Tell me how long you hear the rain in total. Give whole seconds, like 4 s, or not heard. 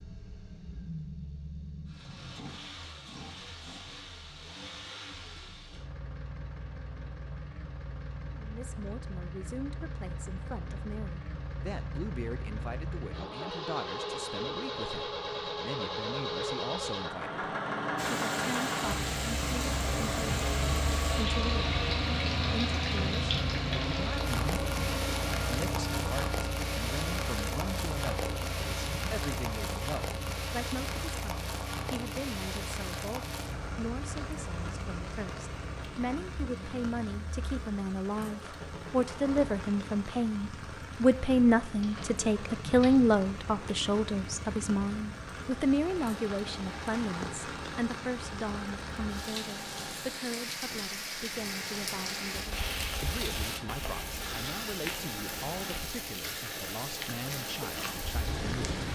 41 s.